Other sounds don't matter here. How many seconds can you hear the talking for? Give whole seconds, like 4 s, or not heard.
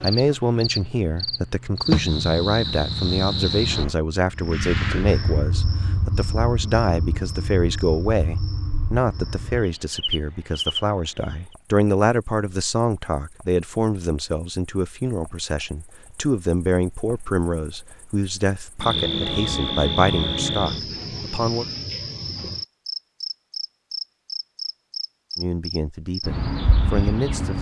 24 s.